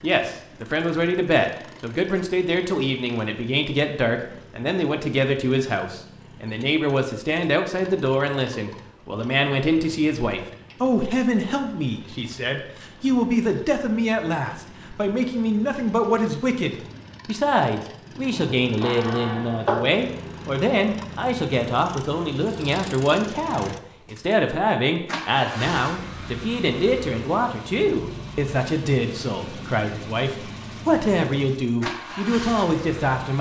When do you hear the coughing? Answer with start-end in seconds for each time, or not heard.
18.3-19.8.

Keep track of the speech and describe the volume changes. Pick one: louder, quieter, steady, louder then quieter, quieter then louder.
steady.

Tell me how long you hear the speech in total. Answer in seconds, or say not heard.
33 s.